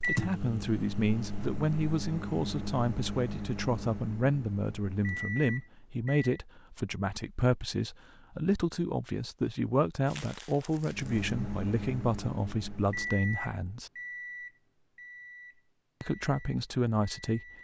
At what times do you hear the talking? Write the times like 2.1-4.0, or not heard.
0.1-13.9, 16.0-17.4.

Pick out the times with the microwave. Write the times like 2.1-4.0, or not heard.
0.0-6.3, 10.8-17.5.